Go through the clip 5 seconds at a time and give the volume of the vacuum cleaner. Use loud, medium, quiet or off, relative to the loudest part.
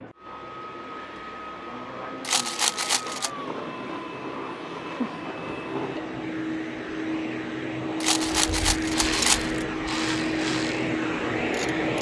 medium, loud, loud.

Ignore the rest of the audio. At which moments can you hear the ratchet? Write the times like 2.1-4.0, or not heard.
8.3-11.9.